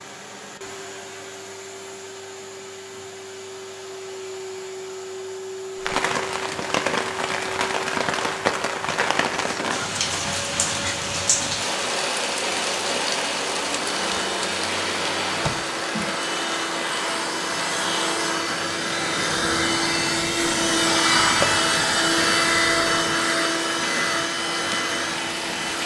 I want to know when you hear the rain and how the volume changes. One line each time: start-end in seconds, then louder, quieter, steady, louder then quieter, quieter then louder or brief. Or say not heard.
5.8-25.8 quieter.